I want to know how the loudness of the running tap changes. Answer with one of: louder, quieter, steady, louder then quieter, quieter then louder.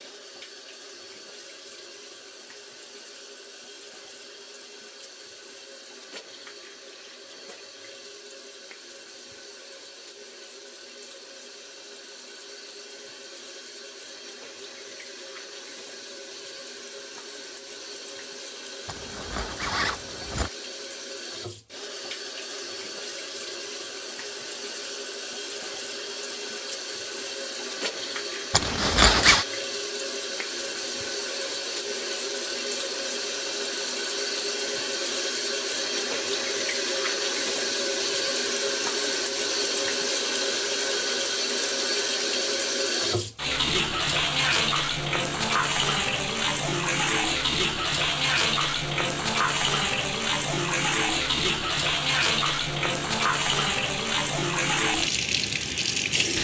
louder.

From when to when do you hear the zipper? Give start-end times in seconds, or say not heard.
18.9-20.5, 28.5-29.4.